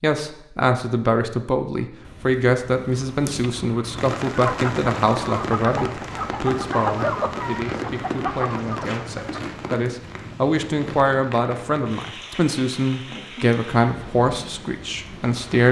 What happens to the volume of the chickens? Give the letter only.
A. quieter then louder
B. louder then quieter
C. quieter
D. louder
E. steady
E.